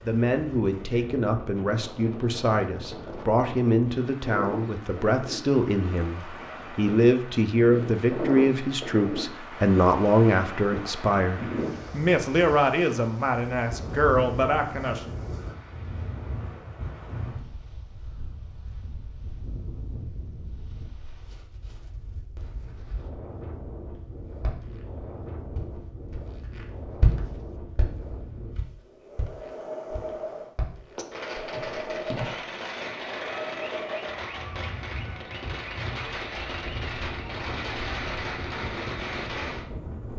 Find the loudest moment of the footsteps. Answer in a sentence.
The volume of the footsteps peaks at 27 seconds.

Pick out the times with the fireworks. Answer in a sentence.
The fireworks can be heard from 30.9 to 39.7 s.